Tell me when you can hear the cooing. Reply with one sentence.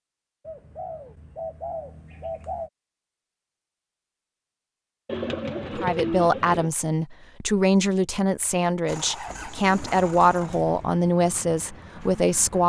The cooing can be heard from 0.5 to 2.7 s, from 5.0 to 6.7 s and from 9.2 to 10.9 s.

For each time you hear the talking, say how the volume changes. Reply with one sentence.
The talking can be heard from 5.8 to 12.6 s, at a steady volume.